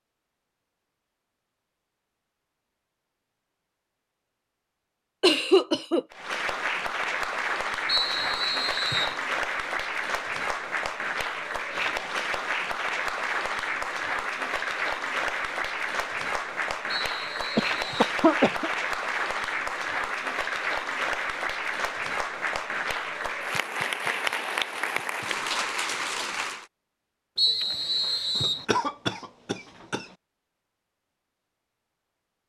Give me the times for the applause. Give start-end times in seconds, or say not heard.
6.1-26.6.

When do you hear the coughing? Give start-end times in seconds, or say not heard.
5.2-6.0, 17.6-18.7, 28.4-30.1.